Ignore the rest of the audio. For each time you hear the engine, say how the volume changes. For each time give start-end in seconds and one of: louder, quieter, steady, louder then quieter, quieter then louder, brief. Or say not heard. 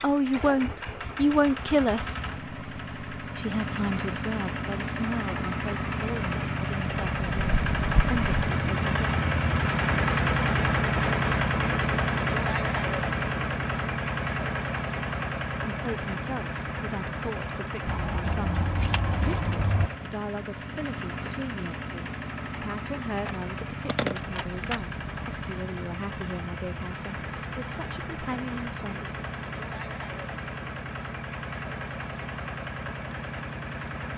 0.0-34.1 louder then quieter.